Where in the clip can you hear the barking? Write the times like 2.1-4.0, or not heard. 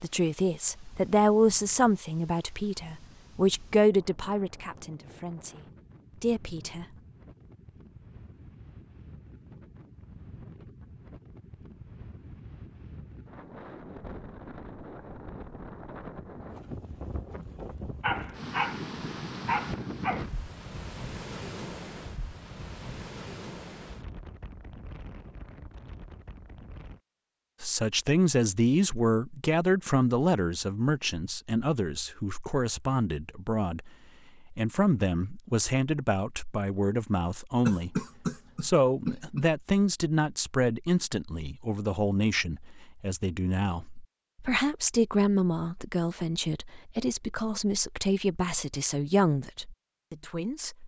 18.0-20.2.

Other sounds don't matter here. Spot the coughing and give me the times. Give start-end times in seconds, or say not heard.
37.6-39.5.